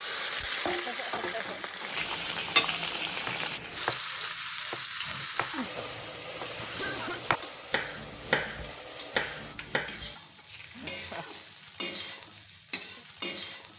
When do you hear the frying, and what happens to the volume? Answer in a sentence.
You can hear the frying from 0.0 to 13.7 s, getting quieter then louder.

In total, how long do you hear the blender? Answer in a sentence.
The blender can't be heard in this clip.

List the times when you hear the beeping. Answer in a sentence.
The beeping can't be heard in this clip.